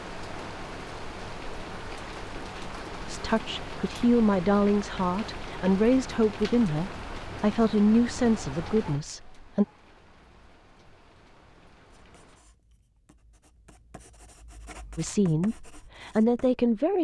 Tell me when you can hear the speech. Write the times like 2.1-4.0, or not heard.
3.0-9.7, 14.9-16.9.